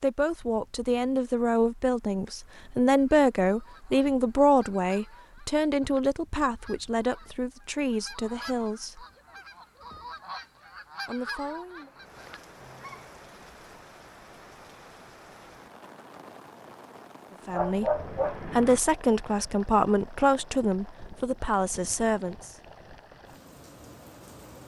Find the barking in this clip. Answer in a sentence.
You can hear the barking from 17.5 to 18.8 s.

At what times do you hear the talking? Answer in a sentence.
The talking can be heard from 0.0 to 9.1 s, from 11.1 to 11.9 s and from 17.4 to 22.6 s.